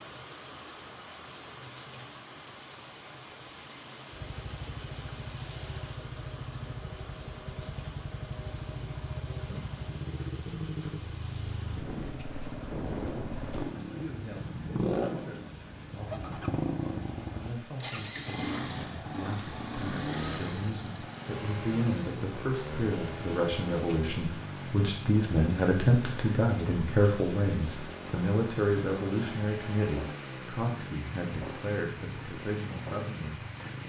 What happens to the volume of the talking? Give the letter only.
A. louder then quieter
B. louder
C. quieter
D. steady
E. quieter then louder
A.